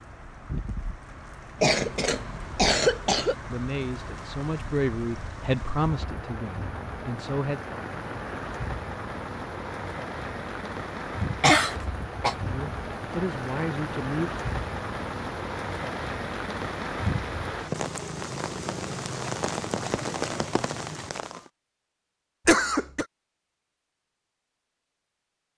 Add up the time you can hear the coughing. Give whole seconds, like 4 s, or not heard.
3 s.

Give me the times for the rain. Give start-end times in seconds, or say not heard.
0.0-21.5.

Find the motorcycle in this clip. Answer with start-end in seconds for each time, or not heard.
not heard.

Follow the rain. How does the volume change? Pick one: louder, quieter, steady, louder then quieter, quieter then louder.
louder.